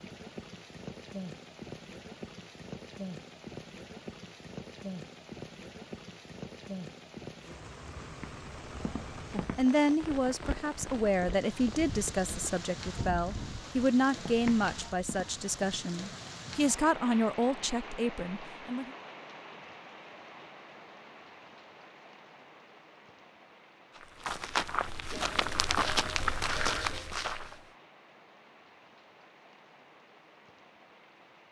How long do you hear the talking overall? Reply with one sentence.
You can hear the talking for 9 seconds altogether.